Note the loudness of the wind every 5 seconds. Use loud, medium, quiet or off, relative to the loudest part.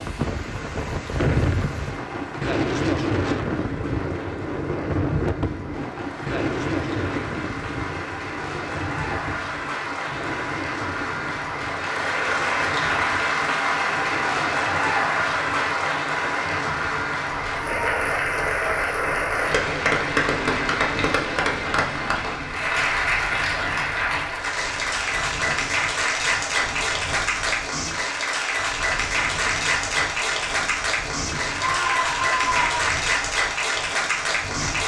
loud, loud, medium, quiet, quiet, quiet, quiet.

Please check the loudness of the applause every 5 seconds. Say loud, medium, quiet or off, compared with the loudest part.
quiet, medium, loud, loud, loud, loud, loud.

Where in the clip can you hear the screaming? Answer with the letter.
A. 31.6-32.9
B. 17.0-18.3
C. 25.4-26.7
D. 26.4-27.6
A.